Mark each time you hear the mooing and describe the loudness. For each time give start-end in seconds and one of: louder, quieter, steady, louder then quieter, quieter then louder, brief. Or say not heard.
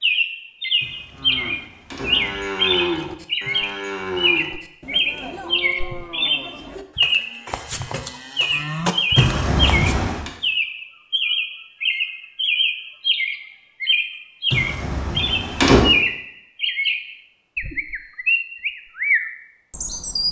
1.1-10.0 quieter then louder.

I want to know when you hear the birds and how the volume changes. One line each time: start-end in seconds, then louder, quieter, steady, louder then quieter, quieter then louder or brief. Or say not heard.
0.0-20.2 steady.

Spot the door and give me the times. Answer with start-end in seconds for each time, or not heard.
0.8-2.5, 9.2-10.3, 14.5-15.9.